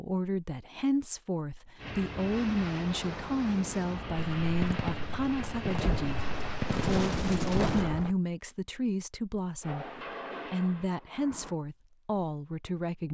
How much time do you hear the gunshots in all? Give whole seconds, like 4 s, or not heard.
4 s.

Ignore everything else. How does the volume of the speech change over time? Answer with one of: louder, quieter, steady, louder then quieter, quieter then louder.
steady.